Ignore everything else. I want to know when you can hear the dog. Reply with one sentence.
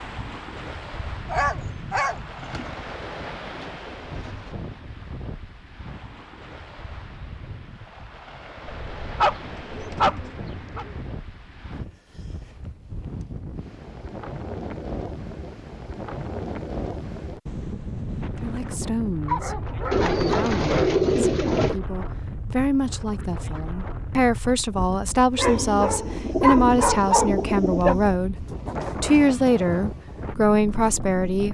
The dog can be heard from 1.2 to 2.7 s, from 8.7 to 10.8 s, from 19.2 to 20.9 s and from 25.4 to 27.9 s.